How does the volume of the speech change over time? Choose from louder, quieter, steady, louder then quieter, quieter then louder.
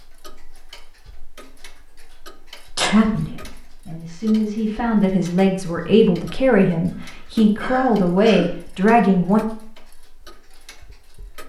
louder.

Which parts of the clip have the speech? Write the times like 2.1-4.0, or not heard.
2.9-9.4.